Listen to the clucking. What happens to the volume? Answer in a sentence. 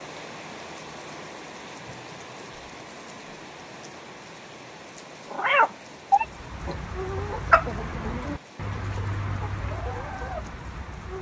The volume of the clucking goes up, then down.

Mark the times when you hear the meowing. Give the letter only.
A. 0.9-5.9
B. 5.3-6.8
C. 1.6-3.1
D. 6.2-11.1
B.